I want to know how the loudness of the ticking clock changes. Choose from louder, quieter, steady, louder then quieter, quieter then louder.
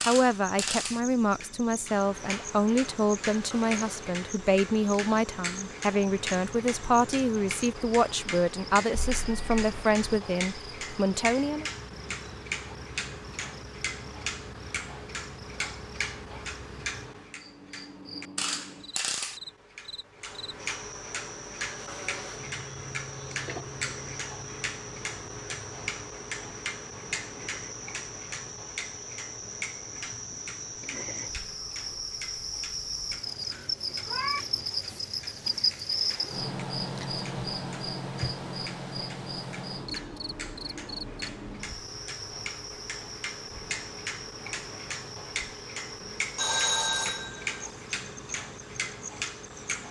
quieter then louder.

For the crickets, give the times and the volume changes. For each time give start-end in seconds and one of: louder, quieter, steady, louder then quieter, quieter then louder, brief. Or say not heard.
0.0-49.8 louder then quieter.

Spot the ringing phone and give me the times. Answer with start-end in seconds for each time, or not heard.
46.4-47.6.